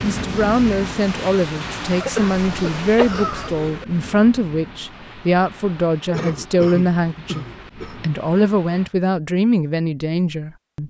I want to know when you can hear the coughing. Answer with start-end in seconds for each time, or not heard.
2.0-3.9, 6.1-8.1.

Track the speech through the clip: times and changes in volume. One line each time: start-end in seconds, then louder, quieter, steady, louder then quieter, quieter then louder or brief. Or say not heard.
0.0-10.8 steady.